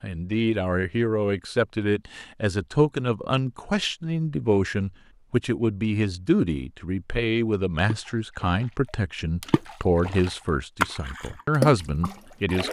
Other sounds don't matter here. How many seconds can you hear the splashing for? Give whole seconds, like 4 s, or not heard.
4 s.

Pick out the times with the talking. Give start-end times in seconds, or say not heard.
0.0-12.6.